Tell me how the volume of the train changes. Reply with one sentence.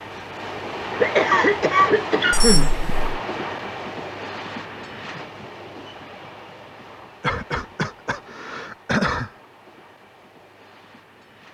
The volume of the train goes down.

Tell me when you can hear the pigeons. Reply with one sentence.
You can't hear the pigeons here.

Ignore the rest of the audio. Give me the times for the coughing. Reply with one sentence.
You can hear the coughing from 1.0 to 2.7 s and from 7.2 to 9.3 s.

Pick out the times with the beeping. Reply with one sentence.
You can hear the beeping from 2.3 to 3.1 s.